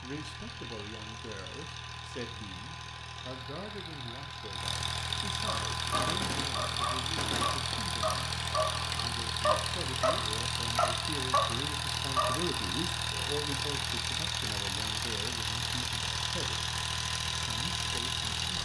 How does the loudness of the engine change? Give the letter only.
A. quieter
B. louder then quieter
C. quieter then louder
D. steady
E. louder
E.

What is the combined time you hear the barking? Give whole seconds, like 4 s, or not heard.
7 s.